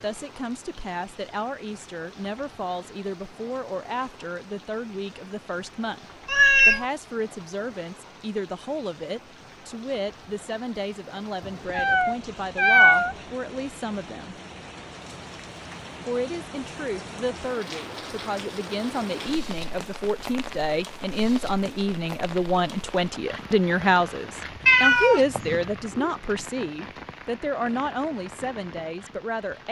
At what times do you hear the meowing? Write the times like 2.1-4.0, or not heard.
6.2-6.8, 11.4-13.2, 24.6-26.1.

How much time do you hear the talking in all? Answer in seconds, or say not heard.
28 s.